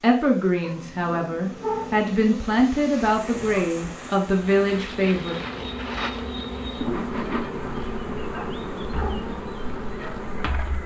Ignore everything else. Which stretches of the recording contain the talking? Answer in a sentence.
You can hear the talking from 0.0 to 5.3 s.